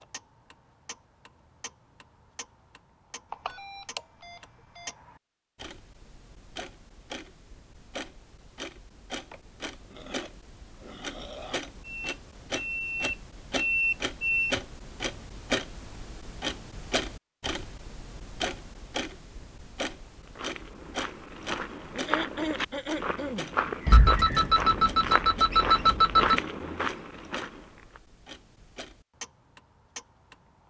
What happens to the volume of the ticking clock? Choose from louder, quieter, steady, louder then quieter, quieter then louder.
louder then quieter.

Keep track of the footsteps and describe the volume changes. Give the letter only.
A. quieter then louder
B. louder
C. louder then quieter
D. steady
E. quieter
B.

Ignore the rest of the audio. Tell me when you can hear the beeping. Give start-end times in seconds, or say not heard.
3.3-4.9, 11.8-14.6, 23.9-26.4.